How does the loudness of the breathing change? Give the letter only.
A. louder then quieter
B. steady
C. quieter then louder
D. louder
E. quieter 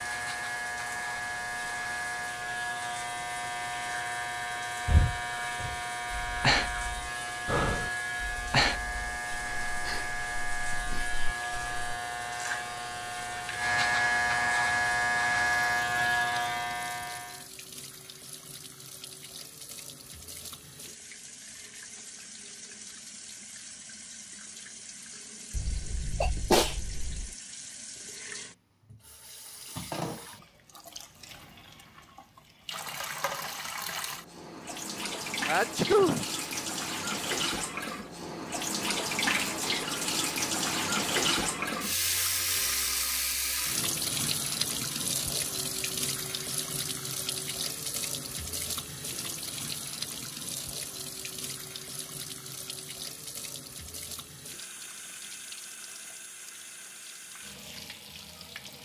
E.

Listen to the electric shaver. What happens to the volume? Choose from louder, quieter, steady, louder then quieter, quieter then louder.
louder.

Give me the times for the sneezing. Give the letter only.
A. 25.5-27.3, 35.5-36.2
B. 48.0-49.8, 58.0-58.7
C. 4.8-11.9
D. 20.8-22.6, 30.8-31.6
A.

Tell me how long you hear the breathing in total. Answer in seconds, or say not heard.
7 s.